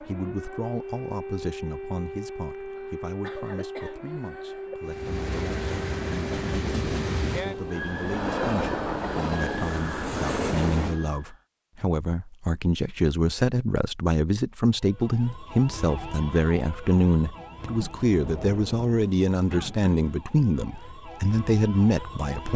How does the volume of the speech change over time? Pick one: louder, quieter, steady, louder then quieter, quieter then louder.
louder.